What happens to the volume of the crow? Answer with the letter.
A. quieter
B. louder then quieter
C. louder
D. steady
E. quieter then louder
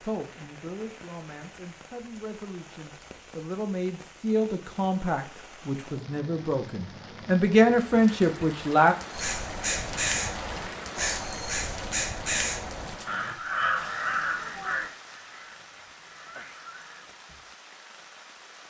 A.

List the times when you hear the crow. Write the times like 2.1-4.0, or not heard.
9.1-17.5.